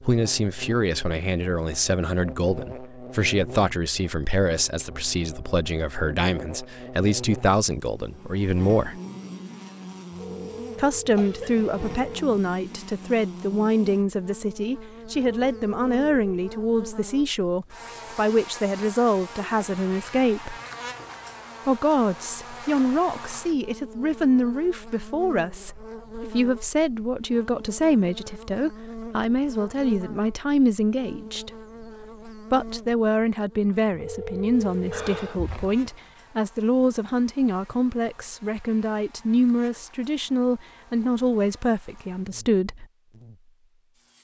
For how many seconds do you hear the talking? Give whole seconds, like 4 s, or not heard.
39 s.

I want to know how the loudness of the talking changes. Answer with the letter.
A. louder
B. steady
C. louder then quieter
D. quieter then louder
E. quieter
B.